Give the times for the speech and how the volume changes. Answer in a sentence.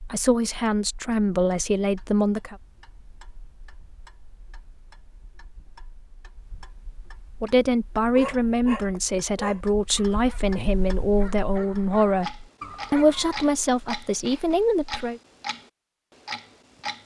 The speech can be heard briefly from 0.0 to 2.5 s; and from 7.4 to 15.2 s, at a steady volume.